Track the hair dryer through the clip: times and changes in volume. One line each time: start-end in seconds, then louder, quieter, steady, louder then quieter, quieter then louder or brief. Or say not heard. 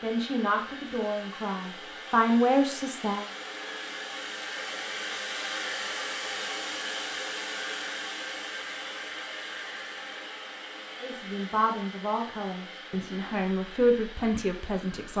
0.0-15.1 louder then quieter.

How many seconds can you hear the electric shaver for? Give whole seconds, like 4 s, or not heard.
not heard.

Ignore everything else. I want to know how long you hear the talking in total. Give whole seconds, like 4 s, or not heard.
7 s.